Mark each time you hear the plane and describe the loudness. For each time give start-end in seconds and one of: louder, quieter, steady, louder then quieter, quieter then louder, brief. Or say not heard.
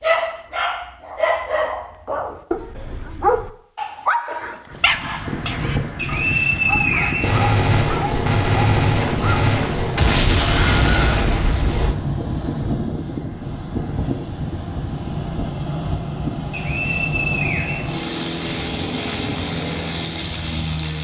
4.7-20.9 steady.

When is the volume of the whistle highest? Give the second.
7 s.